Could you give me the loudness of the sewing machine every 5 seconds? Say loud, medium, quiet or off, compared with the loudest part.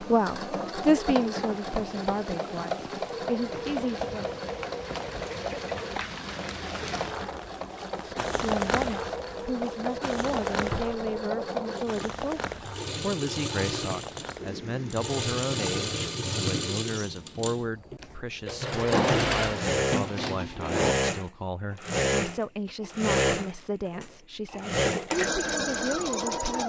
medium, medium, medium, loud, loud, loud.